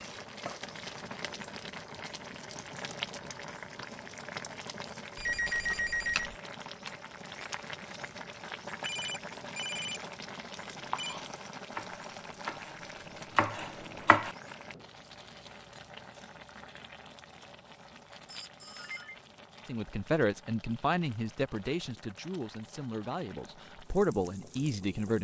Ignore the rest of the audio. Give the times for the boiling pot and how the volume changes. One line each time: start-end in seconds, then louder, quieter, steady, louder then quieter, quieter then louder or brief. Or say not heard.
0.0-25.1 quieter.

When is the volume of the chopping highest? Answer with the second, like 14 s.
14 s.